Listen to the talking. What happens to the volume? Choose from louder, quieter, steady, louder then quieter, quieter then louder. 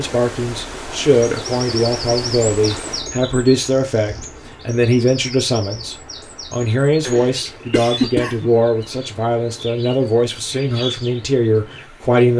steady.